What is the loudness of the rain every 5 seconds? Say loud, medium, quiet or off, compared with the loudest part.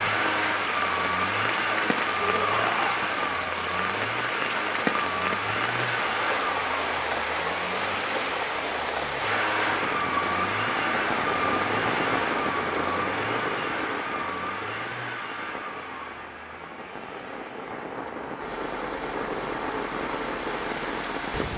loud, loud, loud, medium, loud.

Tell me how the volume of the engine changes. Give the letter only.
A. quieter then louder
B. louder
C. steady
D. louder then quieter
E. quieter
E.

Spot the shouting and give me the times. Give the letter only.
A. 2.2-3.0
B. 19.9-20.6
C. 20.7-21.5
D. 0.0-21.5
A.